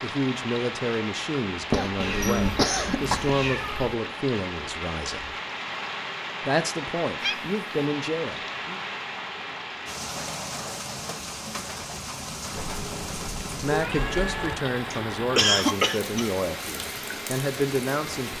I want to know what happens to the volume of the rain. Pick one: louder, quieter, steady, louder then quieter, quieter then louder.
steady.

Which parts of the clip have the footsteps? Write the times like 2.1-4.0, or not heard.
not heard.